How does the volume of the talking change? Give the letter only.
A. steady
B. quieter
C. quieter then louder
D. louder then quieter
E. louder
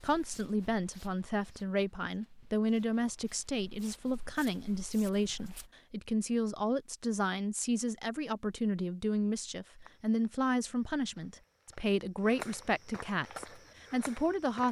A.